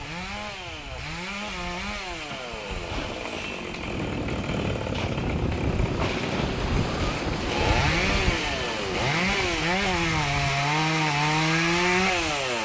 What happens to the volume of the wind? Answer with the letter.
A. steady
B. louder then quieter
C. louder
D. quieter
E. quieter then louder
B.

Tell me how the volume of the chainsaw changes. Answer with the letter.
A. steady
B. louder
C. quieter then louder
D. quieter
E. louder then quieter
B.